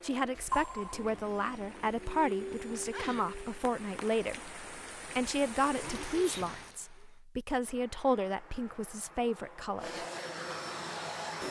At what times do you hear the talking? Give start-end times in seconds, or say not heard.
0.0-10.1.